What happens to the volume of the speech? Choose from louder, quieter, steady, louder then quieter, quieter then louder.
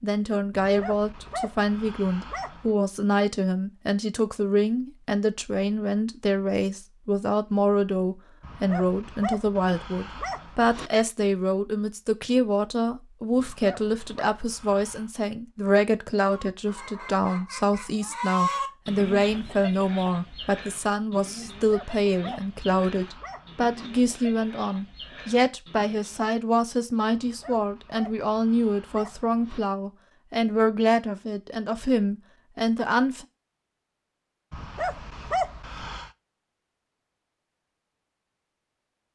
steady.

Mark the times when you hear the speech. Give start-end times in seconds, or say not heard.
0.0-33.2.